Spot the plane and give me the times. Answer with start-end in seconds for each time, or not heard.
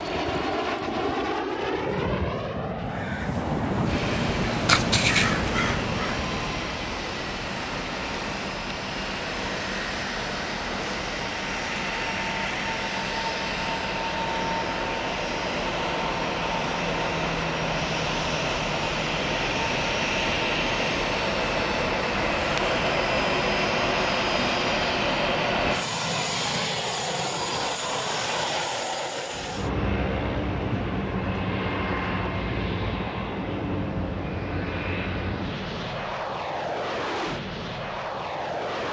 0.0-38.8.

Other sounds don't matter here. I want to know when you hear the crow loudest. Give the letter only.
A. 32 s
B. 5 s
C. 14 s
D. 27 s
B.